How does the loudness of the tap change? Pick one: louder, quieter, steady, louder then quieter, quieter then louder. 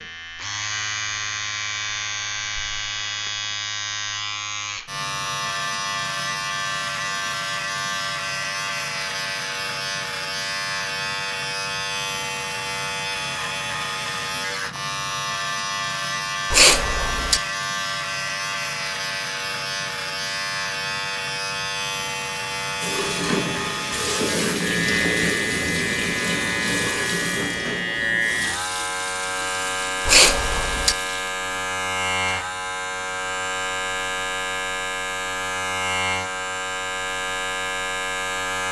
quieter.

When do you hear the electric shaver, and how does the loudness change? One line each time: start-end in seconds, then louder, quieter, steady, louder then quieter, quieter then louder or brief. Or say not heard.
0.0-38.6 steady.